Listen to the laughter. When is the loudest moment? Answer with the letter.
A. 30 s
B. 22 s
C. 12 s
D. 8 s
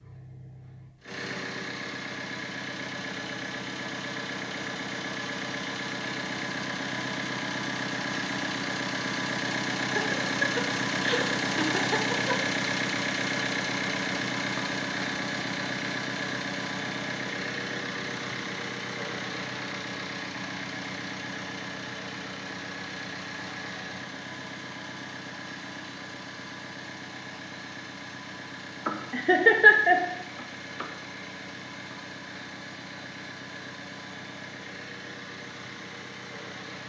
A.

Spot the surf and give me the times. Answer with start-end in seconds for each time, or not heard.
not heard.